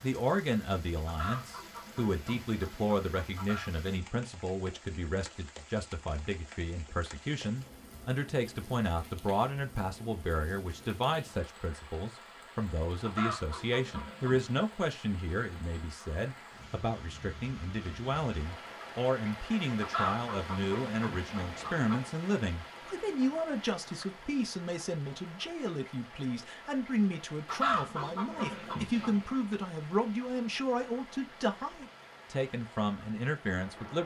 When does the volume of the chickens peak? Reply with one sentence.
The volume of the chickens peaks at 28 seconds.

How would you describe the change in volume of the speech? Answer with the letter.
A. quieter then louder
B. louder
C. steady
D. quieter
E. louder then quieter
C.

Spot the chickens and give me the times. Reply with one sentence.
You can hear the chickens from 1.1 to 3.7 s, from 13.0 to 14.4 s, from 19.8 to 22.1 s and from 27.4 to 29.4 s.